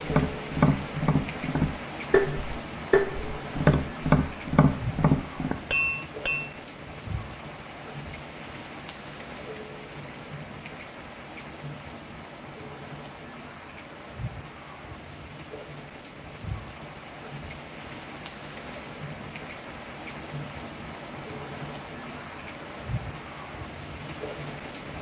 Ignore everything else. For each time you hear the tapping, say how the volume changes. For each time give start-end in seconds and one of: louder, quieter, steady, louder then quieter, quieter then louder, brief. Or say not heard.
0.0-6.5 steady.